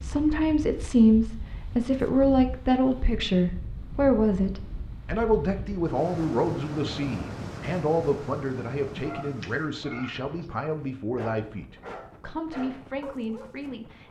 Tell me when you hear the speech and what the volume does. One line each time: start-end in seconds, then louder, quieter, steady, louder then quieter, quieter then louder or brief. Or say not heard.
0.0-14.0 quieter.